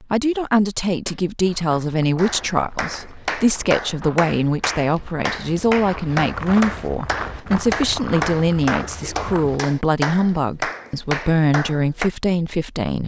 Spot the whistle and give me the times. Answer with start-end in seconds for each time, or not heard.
not heard.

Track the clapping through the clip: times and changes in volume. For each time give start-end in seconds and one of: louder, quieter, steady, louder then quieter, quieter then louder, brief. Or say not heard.
2.1-12.1 steady.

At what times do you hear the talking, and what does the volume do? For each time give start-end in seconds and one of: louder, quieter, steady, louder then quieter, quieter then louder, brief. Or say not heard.
0.0-13.0 steady.